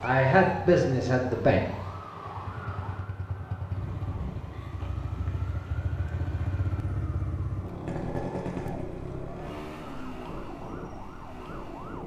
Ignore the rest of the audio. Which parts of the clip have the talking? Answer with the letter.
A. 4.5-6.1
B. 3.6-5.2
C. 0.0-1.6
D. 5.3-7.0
C.